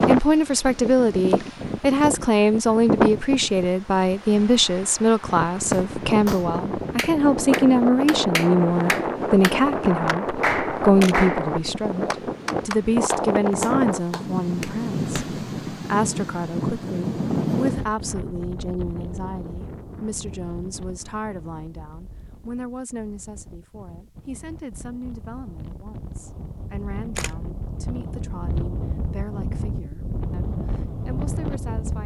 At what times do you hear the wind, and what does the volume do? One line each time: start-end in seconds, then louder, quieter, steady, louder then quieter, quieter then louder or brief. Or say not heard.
0.0-32.0 quieter then louder.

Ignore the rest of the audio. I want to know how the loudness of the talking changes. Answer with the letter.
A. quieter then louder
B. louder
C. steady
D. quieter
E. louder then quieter
D.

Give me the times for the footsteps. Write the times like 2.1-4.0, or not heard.
not heard.